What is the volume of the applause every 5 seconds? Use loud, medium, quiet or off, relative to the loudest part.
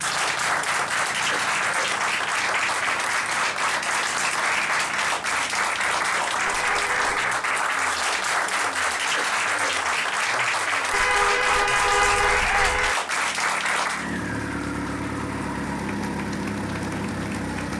loud, loud, loud, quiet.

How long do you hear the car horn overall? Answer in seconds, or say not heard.
3 s.